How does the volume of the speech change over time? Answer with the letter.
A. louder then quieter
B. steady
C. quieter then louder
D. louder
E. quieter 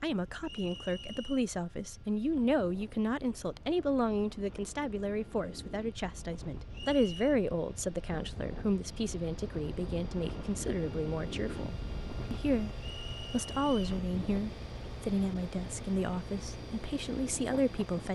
B.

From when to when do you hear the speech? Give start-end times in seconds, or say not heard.
0.0-12.7, 13.3-18.1.